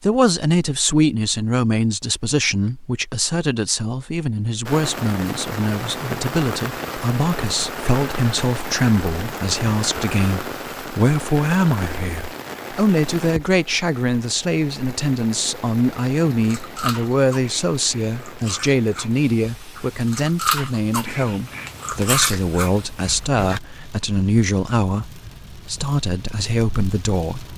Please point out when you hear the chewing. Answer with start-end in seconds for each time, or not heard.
16.4-23.6.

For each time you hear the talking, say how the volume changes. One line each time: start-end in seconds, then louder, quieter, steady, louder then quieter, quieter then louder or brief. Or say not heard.
0.0-27.5 steady.